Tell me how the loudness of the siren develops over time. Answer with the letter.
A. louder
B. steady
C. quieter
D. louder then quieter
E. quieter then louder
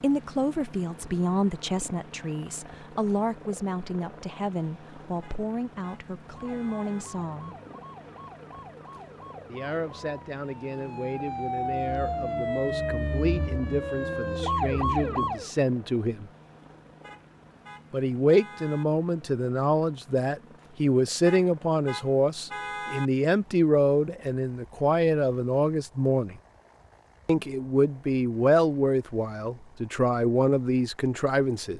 A.